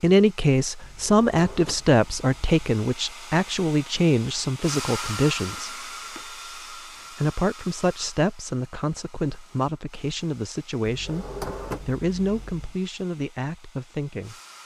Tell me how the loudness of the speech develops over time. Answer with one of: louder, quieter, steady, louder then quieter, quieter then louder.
quieter.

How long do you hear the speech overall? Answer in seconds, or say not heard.
13 s.